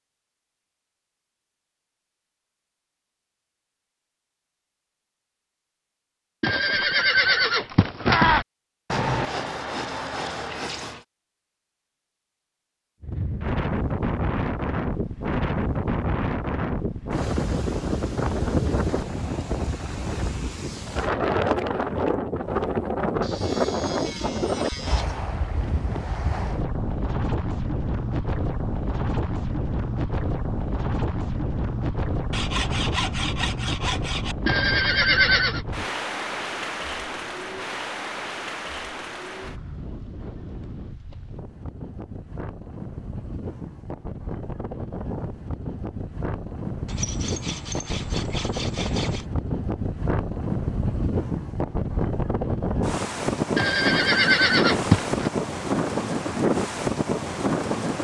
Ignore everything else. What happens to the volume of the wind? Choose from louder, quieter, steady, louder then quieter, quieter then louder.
quieter then louder.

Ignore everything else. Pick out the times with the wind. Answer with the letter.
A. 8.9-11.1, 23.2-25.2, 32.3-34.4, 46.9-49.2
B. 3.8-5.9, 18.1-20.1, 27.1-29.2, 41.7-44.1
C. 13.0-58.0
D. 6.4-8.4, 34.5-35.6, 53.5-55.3
C.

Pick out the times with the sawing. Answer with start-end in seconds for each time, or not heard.
8.9-11.1, 23.2-25.2, 32.3-34.4, 46.9-49.2.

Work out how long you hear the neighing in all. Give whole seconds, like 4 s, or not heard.
5 s.